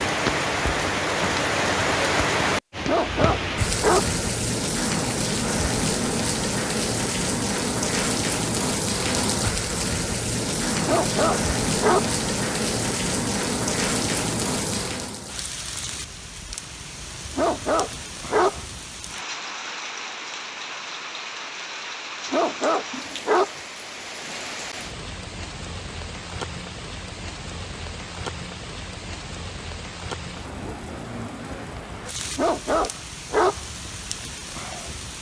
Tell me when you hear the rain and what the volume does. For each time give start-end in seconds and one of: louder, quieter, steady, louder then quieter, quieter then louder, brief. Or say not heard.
0.0-35.1 quieter.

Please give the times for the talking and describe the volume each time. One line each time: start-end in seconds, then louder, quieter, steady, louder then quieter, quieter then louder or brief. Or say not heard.
not heard.